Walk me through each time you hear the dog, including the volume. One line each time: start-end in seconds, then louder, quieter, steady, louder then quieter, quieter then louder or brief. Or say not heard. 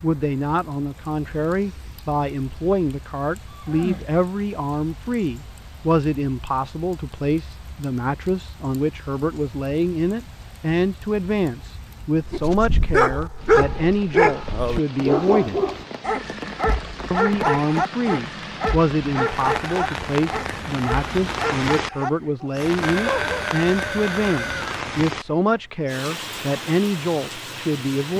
12.2-23.4 quieter.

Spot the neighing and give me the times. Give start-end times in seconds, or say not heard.
3.5-4.1, 22.8-24.9.